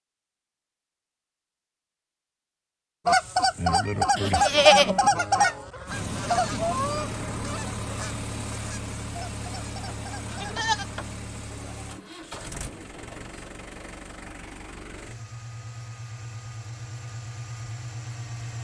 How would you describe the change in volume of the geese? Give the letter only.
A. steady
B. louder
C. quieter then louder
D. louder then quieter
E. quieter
E.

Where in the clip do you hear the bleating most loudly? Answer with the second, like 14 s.
5 s.